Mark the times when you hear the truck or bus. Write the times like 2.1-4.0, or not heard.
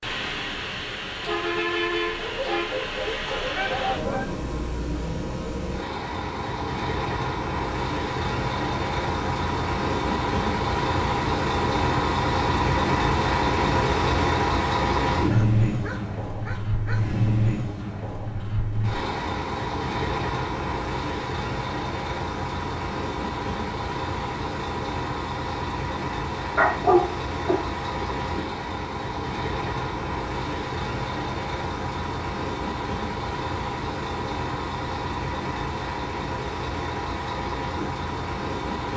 0.0-38.9.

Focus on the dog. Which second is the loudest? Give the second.
27 s.